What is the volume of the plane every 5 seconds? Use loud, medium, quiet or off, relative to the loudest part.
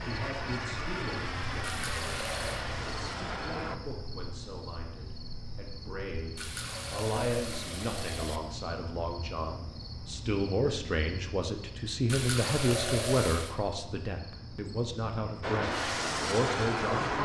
medium, off, off, loud.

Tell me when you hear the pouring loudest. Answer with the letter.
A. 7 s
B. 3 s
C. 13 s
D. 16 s
C.